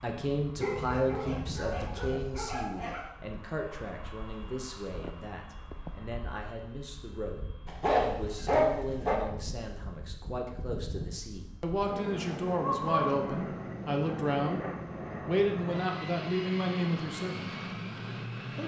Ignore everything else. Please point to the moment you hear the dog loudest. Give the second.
9 s.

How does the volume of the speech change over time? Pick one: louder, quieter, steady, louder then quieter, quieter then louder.
quieter then louder.